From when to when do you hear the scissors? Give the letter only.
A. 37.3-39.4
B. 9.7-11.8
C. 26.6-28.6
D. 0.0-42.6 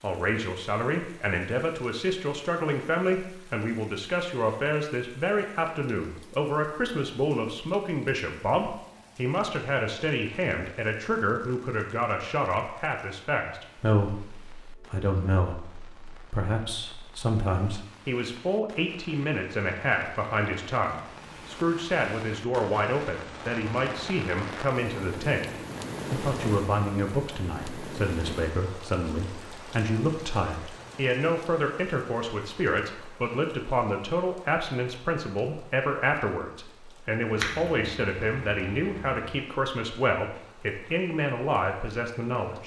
A.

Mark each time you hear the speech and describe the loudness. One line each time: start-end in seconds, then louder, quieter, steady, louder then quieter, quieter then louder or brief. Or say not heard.
0.0-42.6 steady.